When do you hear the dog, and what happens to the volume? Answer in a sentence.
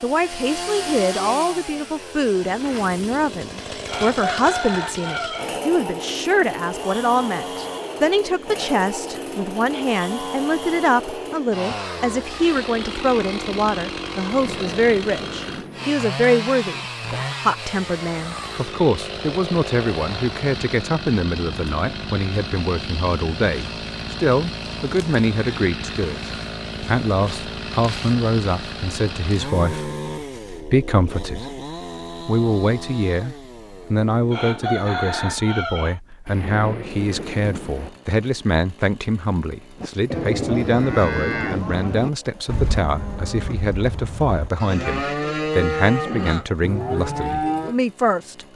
The dog can't be heard in this clip.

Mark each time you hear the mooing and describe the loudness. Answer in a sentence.
You can hear the mooing from 39.8 to 47.8 s, getting quieter then louder.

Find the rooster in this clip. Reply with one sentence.
You can hear the rooster from 3.9 to 5.5 s and from 34.3 to 36.0 s.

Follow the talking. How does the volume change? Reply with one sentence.
The loudness of the talking stays about the same.